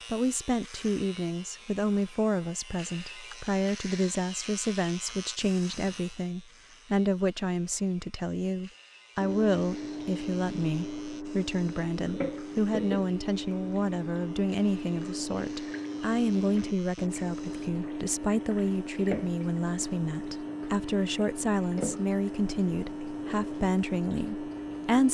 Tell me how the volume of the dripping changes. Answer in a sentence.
The volume of the dripping stays about the same.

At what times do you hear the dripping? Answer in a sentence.
You can hear the dripping from 9.2 to 25.0 s.